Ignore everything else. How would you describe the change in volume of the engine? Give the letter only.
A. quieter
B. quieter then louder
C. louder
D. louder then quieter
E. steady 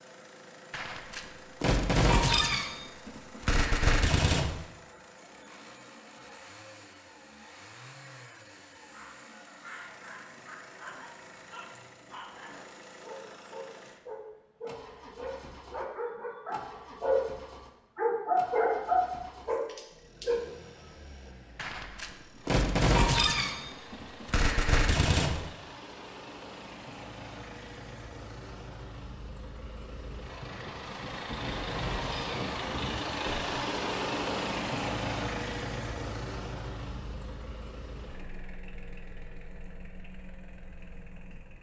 C.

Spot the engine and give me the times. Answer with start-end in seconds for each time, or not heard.
0.0-41.5.